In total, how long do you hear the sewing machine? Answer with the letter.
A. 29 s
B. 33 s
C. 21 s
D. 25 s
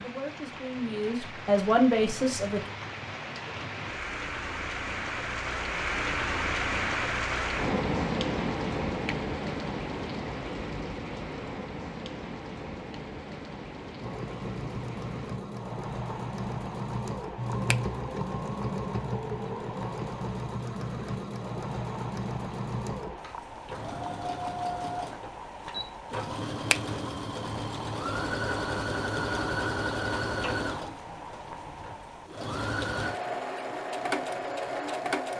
C.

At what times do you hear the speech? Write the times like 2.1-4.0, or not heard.
0.0-2.6.